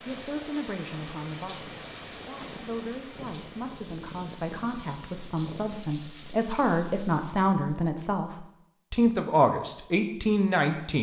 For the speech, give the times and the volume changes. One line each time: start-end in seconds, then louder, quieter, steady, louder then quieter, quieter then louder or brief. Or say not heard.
0.0-10.9 louder.